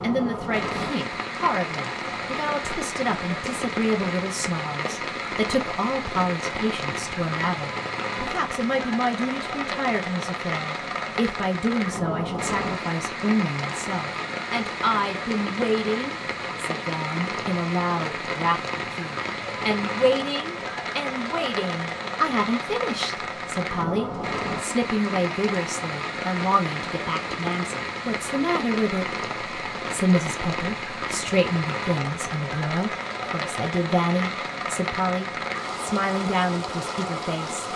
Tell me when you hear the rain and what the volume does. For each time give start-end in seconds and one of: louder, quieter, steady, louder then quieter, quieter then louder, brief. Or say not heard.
0.0-37.7 steady.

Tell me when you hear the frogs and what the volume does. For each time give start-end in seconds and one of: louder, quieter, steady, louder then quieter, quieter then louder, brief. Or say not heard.
not heard.